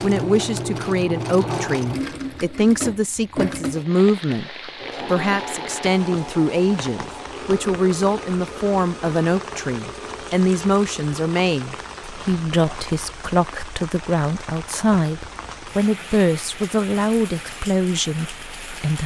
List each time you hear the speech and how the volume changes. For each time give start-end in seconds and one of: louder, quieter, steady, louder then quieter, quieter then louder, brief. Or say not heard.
0.0-19.0 steady.